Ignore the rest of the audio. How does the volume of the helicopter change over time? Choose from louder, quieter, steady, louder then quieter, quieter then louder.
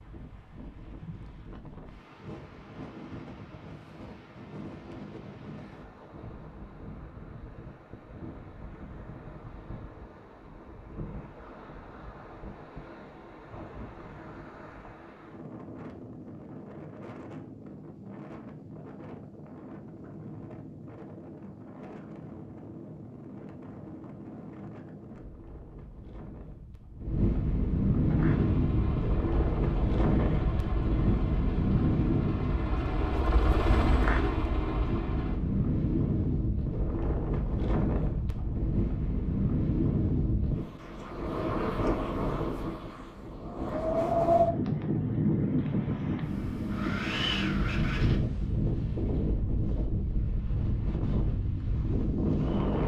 louder.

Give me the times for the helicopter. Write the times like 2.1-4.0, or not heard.
28.0-35.4.